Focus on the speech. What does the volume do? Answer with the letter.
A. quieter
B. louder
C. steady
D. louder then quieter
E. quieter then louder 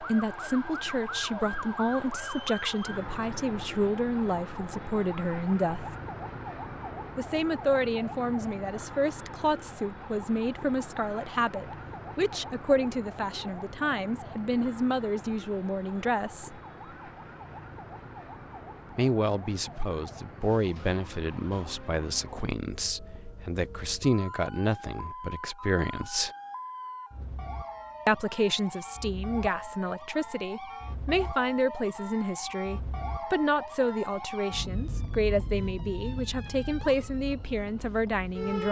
C.